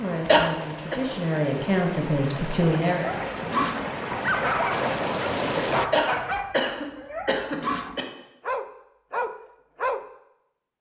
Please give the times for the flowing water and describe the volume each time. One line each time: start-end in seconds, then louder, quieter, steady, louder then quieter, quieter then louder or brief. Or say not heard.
0.0-5.9 louder.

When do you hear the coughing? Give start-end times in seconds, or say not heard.
0.2-1.0, 5.9-8.1.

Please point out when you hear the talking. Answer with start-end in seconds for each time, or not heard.
0.0-3.1.